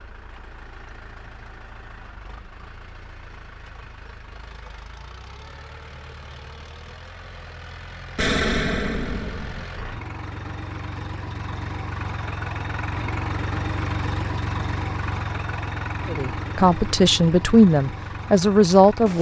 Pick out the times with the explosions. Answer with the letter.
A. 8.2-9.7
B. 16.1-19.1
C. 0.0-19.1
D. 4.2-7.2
A.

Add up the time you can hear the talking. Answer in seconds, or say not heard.
3 s.